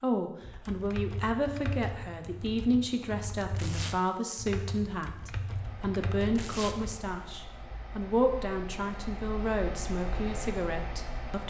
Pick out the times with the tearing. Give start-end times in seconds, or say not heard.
3.5-4.0, 6.3-6.8.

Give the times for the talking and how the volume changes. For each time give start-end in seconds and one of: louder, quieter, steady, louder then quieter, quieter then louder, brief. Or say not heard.
0.0-11.4 steady.